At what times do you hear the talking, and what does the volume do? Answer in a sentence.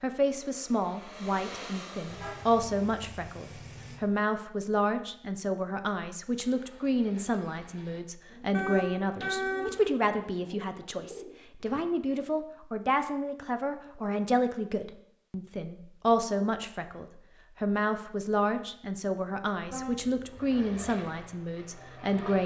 You can hear the talking from 0.0 to 22.4 s, at a steady volume.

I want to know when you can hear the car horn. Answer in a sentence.
The car horn can be heard from 2.0 to 4.0 s, from 8.5 to 10.0 s and from 19.6 to 20.6 s.